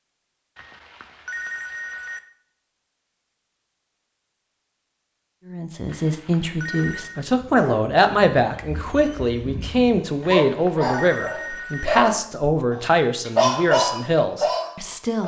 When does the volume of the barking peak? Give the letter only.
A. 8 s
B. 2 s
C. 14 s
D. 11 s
C.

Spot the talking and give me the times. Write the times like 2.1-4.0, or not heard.
5.5-15.2.